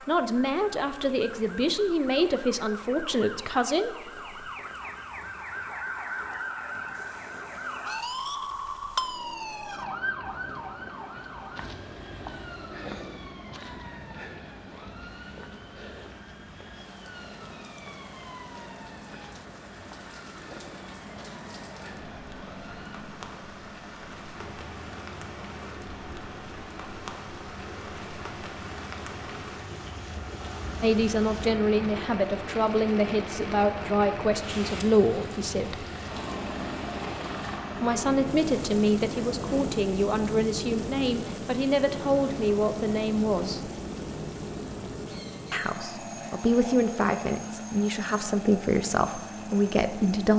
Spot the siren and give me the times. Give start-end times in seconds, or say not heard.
0.0-23.0.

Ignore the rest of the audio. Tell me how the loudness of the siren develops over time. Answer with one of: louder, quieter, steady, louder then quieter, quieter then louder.
louder then quieter.